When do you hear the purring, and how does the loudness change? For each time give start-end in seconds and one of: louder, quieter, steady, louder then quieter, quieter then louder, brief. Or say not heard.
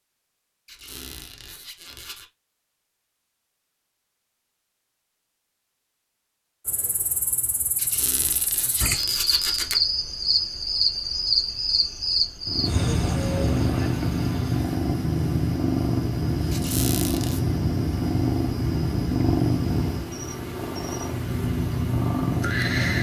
12.4-22.9 steady.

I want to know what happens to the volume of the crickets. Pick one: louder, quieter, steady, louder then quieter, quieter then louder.
louder then quieter.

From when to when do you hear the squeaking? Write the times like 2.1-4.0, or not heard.
0.7-2.2, 7.8-9.8, 16.5-17.4.